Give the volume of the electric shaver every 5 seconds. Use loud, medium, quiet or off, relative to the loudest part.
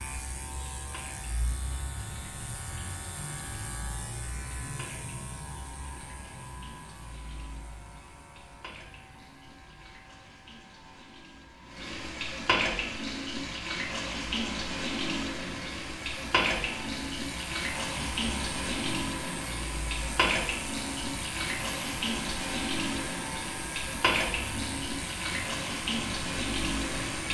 loud, medium, quiet, loud, loud, loud.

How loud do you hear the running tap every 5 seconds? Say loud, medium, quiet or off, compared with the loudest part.
quiet, quiet, loud, loud, loud, loud.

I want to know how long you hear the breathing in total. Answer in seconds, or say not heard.
not heard.